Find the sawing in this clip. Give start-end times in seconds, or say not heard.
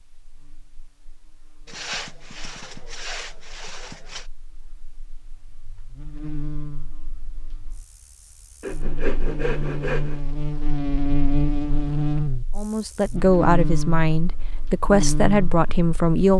1.6-4.2, 8.6-10.2.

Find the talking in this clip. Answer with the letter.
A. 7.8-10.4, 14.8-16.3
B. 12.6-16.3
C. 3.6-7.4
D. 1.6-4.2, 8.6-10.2
B.